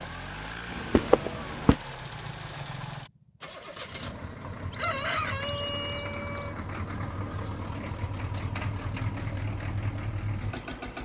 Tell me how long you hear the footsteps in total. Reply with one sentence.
You can hear the footsteps for 2 seconds altogether.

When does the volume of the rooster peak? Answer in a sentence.
The loudest moment of the rooster is at 5 seconds.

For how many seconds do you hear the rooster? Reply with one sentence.
You can hear the rooster for 2 seconds altogether.